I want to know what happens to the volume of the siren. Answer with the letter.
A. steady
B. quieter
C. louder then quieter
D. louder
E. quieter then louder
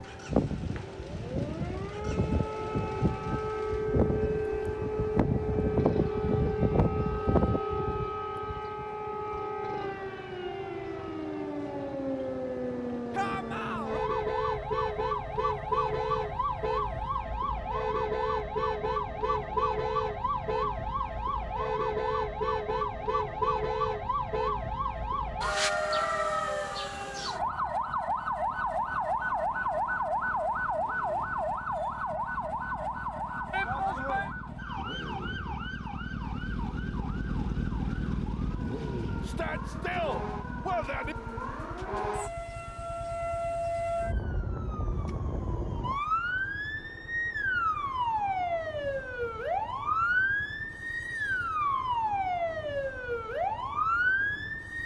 E.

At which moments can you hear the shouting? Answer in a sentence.
The shouting can be heard from 13.1 to 14.0 s, from 33.5 to 34.3 s and from 39.2 to 41.1 s.